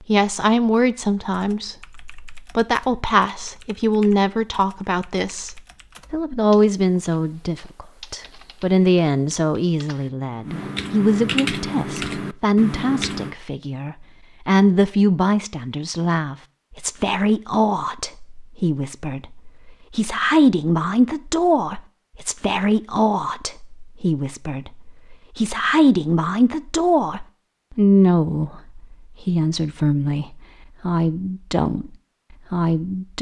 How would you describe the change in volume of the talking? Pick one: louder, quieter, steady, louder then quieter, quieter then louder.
steady.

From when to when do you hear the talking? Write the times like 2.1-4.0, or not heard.
0.1-33.1.